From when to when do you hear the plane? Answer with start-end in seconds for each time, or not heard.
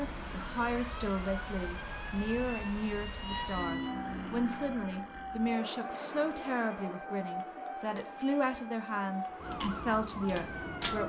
0.0-11.0.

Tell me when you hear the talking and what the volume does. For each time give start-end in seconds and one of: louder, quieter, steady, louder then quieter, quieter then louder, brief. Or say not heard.
0.0-11.0 steady.